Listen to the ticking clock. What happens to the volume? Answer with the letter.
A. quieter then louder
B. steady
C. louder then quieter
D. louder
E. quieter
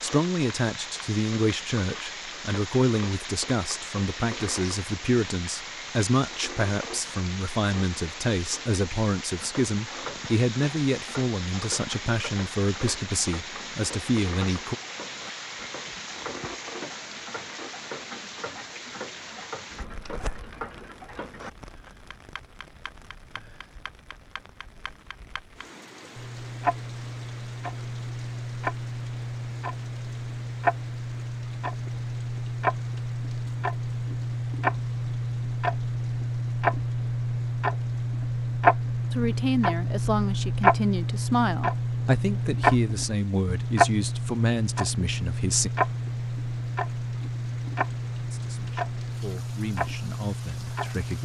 D.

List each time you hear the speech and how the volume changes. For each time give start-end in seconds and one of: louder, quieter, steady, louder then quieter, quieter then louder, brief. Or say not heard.
0.0-14.8 steady
39.1-45.7 steady
48.3-51.2 brief.